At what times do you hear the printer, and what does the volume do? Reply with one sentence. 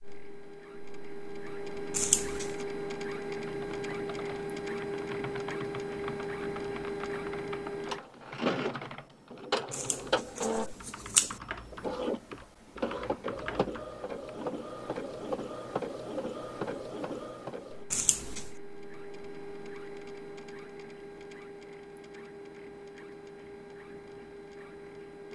The printer can be heard from 0.0 to 25.2 s, getting quieter.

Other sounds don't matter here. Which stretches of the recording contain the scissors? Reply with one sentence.
You can hear the scissors from 1.9 to 2.5 s, from 9.7 to 11.3 s and from 17.9 to 18.5 s.